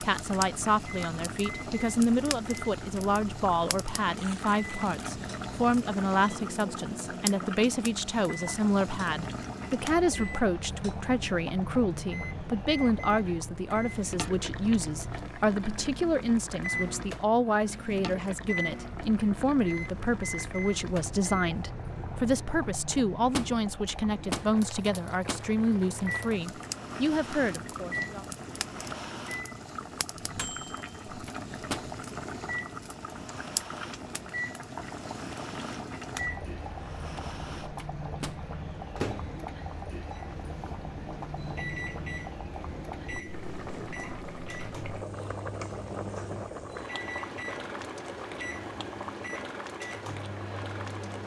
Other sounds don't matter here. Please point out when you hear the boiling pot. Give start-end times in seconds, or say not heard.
0.0-51.2.